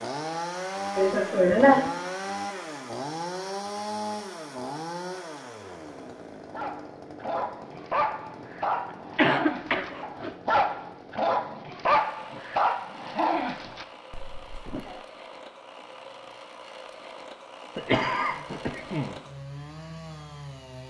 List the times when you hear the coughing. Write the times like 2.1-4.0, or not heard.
0.9-1.9, 9.2-10.3, 17.8-19.1.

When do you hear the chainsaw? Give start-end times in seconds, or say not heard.
0.0-20.8.